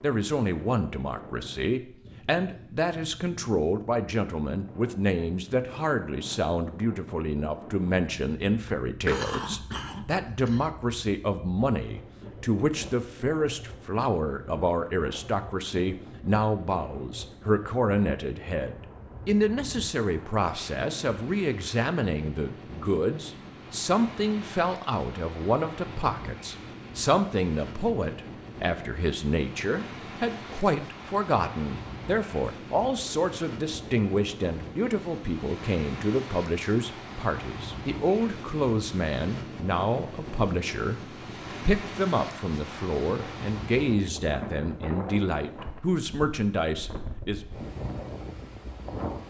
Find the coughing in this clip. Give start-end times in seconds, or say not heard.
9.1-10.7.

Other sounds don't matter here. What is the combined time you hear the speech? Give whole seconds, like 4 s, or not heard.
47 s.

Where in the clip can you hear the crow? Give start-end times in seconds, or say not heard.
not heard.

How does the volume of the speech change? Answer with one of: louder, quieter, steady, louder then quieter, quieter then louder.
steady.